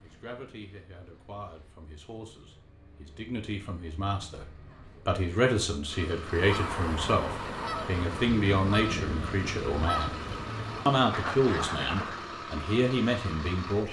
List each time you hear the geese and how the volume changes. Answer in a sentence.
You can hear the geese from 6.2 to 12.2 s, at a steady volume.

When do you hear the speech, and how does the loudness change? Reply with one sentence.
The speech can be heard from 0.0 to 10.2 s, getting louder; and briefly from 10.8 to 13.8 s.